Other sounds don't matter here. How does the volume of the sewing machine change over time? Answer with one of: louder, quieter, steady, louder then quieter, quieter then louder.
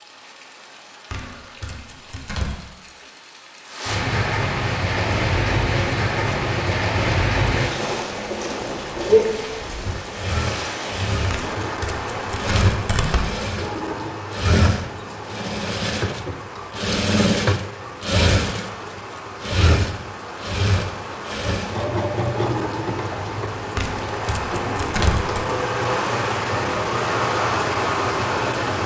louder then quieter.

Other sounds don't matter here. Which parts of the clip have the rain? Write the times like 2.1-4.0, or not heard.
0.0-28.8.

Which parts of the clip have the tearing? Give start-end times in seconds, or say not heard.
1.1-2.5, 11.3-13.3, 23.8-25.4.